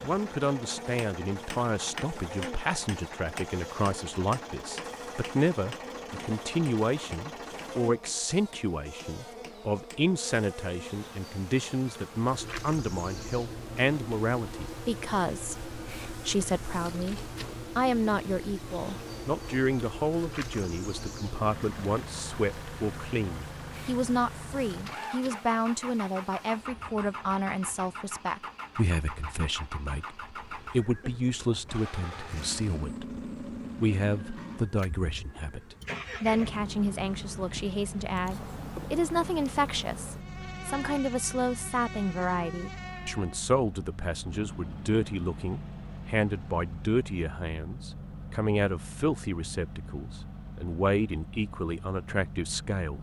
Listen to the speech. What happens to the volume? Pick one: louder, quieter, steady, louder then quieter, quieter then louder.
steady.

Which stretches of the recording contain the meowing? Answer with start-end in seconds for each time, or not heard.
not heard.